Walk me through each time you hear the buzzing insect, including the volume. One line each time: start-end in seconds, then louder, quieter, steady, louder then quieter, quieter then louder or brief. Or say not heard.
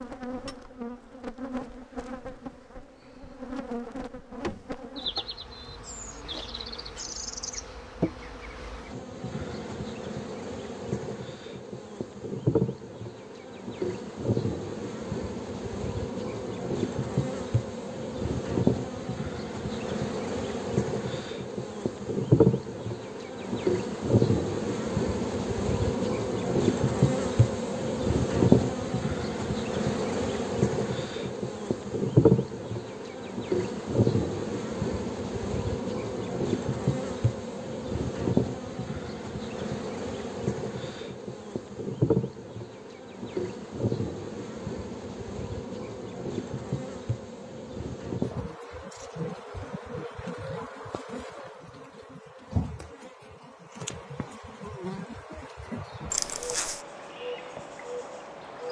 0.0-58.6 louder then quieter.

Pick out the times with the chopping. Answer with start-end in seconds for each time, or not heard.
not heard.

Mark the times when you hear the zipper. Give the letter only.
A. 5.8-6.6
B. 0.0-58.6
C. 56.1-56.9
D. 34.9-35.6
C.